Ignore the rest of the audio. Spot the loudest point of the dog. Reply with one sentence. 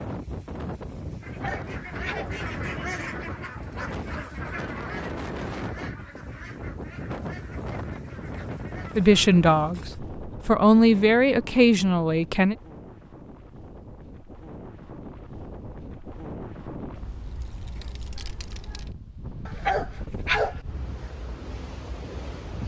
The volume of the dog peaks at 20 seconds.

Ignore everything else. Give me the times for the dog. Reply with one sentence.
You can hear the dog from 1.2 to 2.4 s and from 19.4 to 20.6 s.